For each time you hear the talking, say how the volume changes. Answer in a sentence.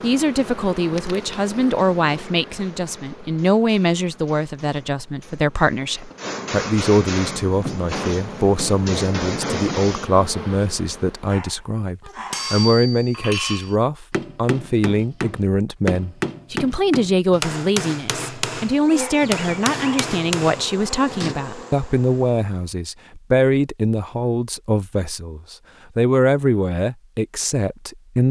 The talking can be heard from 0.0 to 28.2 s, at a steady volume.